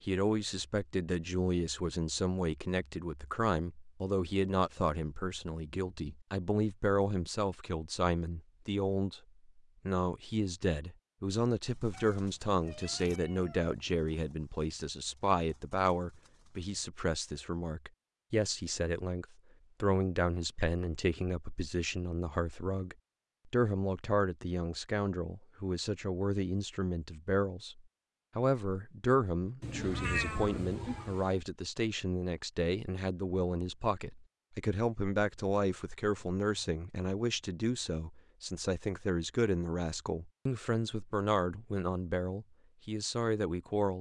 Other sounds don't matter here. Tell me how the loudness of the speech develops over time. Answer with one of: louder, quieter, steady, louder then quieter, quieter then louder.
steady.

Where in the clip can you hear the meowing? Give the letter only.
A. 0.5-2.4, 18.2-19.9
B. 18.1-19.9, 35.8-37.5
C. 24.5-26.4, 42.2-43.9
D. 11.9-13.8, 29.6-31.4
D.